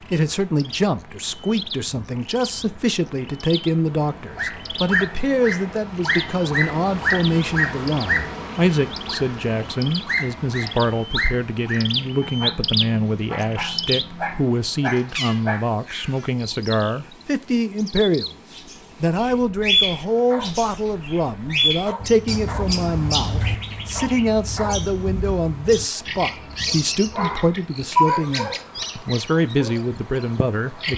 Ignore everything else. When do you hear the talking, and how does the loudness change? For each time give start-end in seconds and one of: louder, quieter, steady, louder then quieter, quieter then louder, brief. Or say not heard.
0.1-30.9 steady.